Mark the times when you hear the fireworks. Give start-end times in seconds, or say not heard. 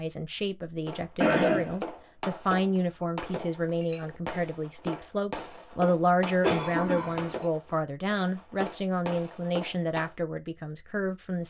0.8-10.2.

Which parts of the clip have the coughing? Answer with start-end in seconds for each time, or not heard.
1.2-1.7, 6.4-7.3.